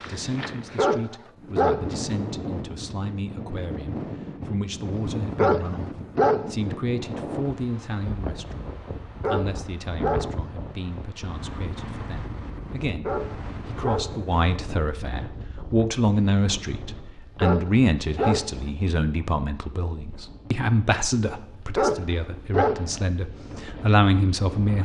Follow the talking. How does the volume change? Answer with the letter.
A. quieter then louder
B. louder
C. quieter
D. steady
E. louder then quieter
B.